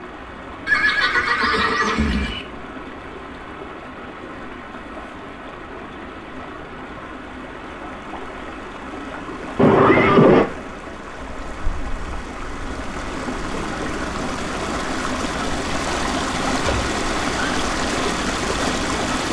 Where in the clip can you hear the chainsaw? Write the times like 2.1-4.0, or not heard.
not heard.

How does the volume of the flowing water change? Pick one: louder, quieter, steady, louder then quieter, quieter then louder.
louder.